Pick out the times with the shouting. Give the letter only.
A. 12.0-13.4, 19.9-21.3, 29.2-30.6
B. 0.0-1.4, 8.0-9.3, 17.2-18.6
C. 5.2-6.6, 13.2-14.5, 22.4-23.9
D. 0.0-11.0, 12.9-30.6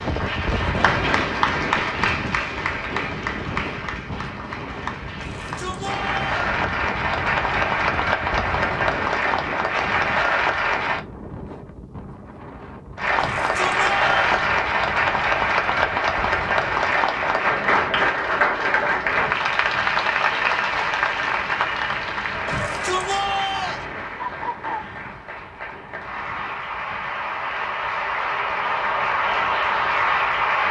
C.